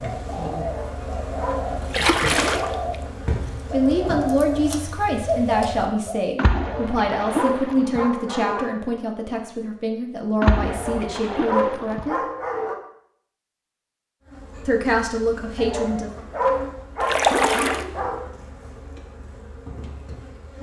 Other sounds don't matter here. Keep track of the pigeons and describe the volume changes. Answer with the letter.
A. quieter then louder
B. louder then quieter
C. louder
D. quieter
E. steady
C.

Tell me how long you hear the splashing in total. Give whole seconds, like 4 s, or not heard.
5 s.